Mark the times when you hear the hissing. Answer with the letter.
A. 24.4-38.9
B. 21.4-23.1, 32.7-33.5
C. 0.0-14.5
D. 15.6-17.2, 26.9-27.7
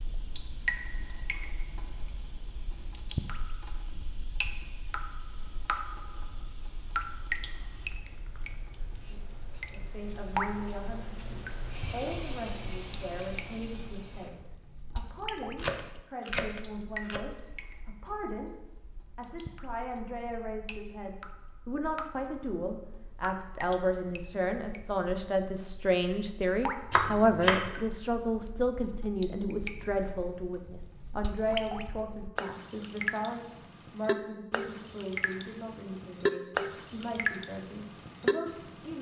C.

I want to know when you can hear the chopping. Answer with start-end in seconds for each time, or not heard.
15.6-17.2, 26.9-27.7.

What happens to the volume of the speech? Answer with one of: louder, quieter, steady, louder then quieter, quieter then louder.
louder then quieter.